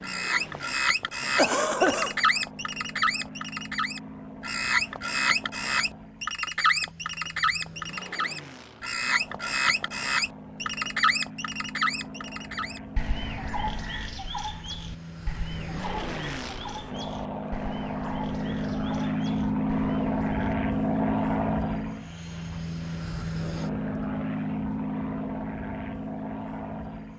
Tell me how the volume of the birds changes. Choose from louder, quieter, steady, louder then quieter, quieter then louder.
quieter.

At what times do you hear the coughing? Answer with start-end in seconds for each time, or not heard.
1.4-2.1.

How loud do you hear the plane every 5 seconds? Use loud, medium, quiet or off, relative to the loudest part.
quiet, quiet, quiet, loud, loud, medium.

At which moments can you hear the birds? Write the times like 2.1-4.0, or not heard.
0.0-20.6.